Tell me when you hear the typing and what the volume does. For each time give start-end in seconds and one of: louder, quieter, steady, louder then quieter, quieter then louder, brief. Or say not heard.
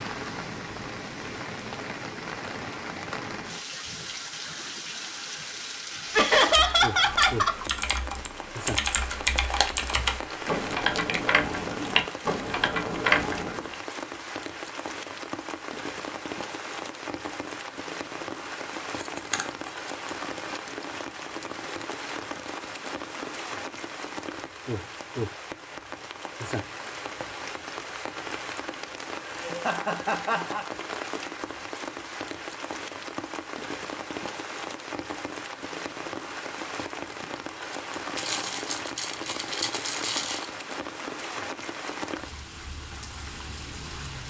6.3-13.8 louder.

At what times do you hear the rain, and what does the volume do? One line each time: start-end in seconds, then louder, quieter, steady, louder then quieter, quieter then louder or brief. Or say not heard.
0.0-44.2 steady.